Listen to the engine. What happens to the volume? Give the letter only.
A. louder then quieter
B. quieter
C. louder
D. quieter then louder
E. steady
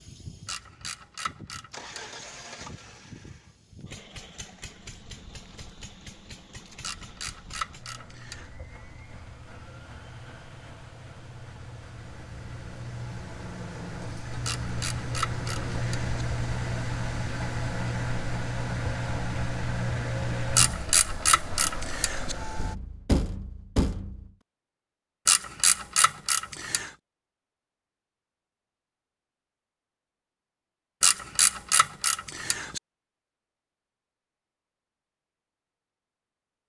C.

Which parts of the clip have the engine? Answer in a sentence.
You can hear the engine from 0.0 to 22.8 s.